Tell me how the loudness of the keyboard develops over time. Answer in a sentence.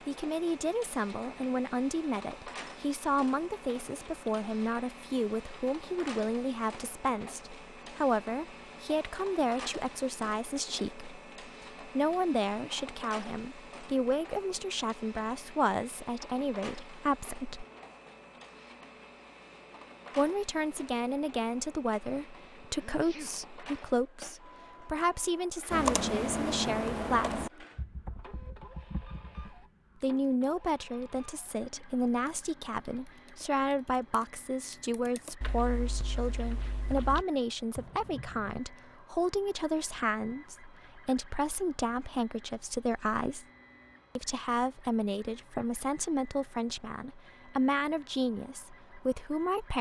The loudness of the keyboard goes down, then up.